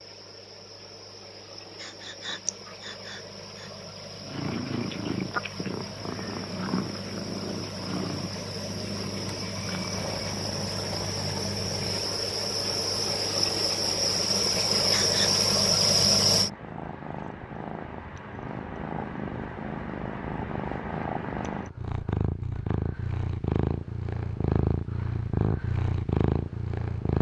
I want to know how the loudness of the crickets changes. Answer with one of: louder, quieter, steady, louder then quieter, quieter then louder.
louder.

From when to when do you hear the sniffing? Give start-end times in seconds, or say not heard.
1.8-3.6, 14.8-15.4.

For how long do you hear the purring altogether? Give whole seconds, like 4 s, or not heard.
23 s.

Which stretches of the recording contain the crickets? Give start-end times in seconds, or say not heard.
0.0-16.5.